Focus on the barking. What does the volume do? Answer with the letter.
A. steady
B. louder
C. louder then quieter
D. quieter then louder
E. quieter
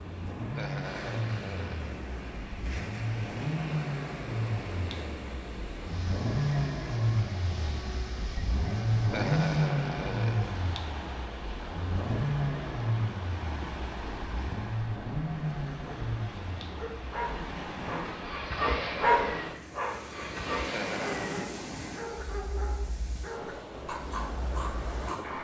C.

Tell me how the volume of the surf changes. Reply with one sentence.
The loudness of the surf stays about the same.